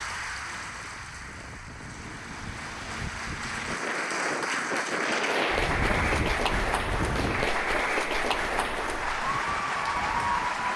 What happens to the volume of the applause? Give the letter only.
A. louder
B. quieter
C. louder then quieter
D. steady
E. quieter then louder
A.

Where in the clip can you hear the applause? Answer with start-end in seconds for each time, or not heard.
0.0-10.7.